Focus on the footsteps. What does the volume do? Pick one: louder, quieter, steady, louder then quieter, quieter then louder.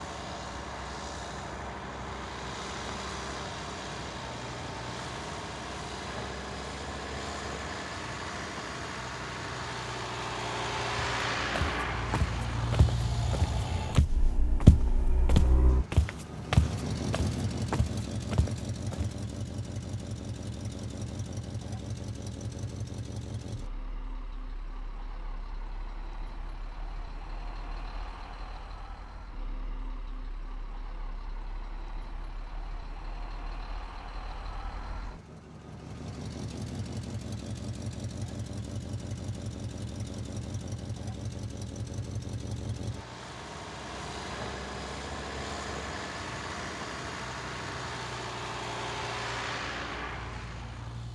louder then quieter.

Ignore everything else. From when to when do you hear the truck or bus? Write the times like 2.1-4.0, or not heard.
0.0-51.1.